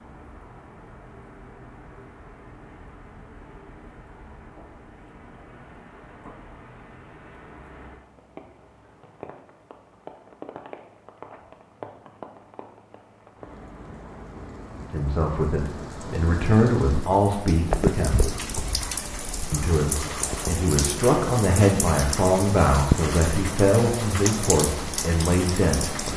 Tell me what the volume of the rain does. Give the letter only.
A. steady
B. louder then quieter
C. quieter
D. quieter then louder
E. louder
E.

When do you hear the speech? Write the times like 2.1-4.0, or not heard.
14.9-18.4, 19.5-26.1.